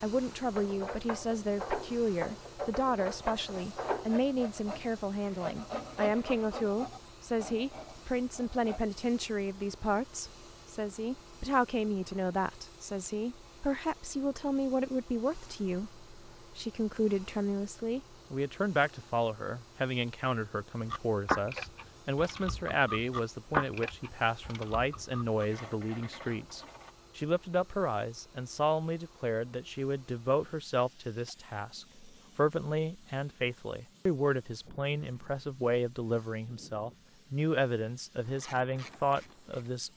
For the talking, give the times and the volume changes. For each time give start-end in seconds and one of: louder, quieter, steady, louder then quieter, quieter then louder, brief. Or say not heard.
0.0-39.9 steady.